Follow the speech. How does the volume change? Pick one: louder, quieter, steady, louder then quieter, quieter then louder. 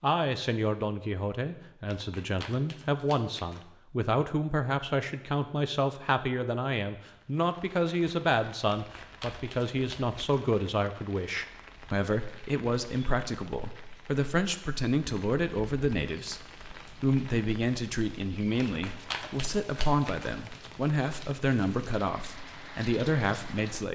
steady.